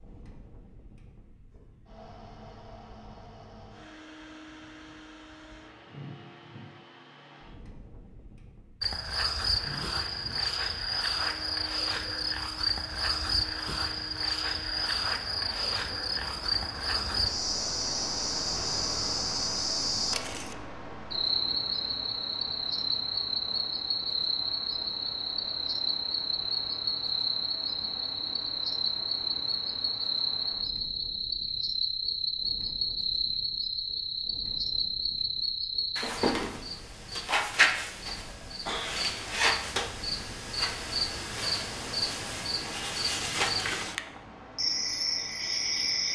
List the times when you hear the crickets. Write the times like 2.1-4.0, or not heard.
8.8-46.1.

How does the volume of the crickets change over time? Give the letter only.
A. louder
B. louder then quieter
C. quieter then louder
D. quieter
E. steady
E.